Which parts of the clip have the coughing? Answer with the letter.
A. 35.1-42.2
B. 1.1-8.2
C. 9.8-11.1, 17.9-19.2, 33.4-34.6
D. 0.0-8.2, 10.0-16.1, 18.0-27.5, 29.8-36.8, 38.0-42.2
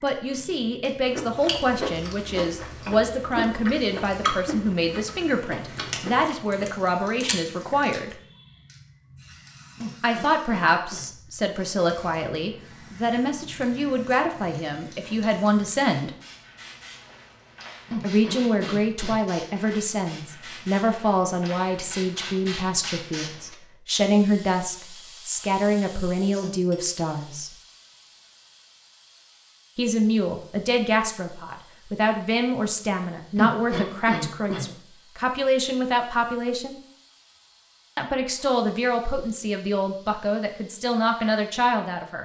C.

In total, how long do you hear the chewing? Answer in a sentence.
The chewing can be heard for 7 seconds in total.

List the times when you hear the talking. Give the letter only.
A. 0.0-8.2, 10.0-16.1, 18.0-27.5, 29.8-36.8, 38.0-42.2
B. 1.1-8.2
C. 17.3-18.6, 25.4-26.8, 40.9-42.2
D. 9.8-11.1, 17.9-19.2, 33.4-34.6
A.